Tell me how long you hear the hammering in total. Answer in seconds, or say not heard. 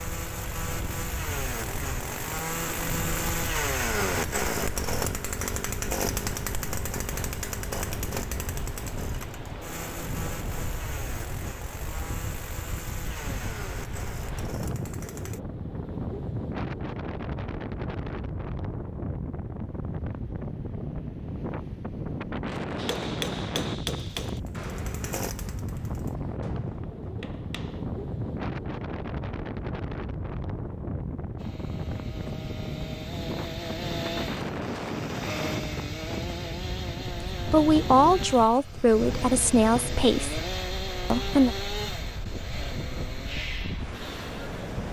5 s.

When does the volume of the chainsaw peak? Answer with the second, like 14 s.
4 s.